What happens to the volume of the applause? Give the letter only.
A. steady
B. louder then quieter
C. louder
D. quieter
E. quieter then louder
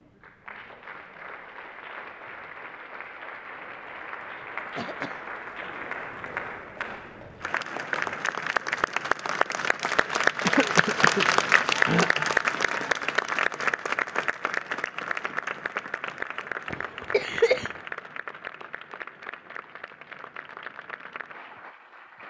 B.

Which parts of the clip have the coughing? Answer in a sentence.
The coughing can be heard from 4.8 to 5.2 s, from 10.4 to 11.2 s, from 11.8 to 12.2 s and from 16.7 to 17.8 s.